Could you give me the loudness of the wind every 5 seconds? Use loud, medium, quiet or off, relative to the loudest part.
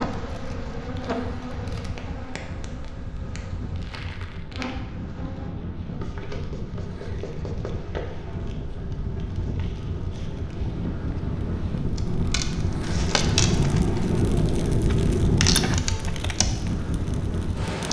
medium, medium, loud, loud.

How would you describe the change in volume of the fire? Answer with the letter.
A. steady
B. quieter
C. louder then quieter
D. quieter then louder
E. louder
E.